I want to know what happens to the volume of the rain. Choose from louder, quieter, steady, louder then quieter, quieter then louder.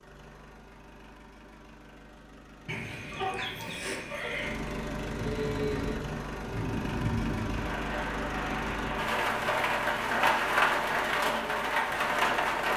louder.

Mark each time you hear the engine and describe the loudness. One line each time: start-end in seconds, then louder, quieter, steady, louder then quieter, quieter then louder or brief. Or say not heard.
0.0-12.7 louder then quieter.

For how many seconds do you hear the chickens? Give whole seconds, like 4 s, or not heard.
2 s.